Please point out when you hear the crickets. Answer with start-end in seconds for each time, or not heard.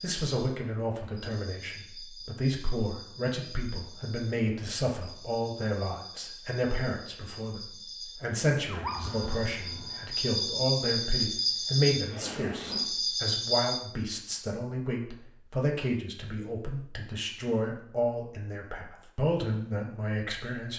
0.0-13.8.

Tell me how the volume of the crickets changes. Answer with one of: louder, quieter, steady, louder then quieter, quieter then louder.
louder.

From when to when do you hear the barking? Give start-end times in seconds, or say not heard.
8.7-10.3.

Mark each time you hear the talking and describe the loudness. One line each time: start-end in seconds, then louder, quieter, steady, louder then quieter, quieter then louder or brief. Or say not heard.
0.0-20.7 steady.